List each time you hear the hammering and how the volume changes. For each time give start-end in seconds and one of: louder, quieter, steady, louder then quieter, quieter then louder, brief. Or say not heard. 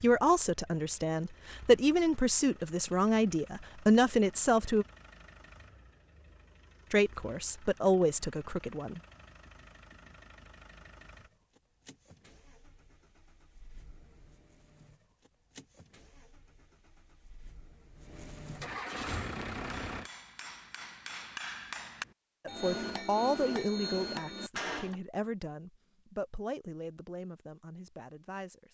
19.0-25.0 louder.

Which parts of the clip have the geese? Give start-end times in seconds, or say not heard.
not heard.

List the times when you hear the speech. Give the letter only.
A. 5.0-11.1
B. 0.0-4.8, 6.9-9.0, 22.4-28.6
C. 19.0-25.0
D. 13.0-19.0
B.